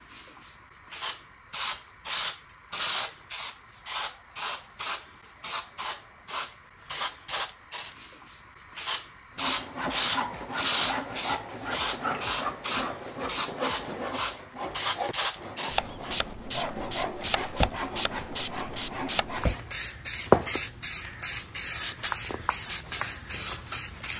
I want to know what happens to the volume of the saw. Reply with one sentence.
The loudness of the saw stays about the same.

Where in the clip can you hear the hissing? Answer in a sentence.
You can hear the hissing from 0.0 to 24.1 s.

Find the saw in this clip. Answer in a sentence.
The saw can be heard from 9.3 to 19.8 s.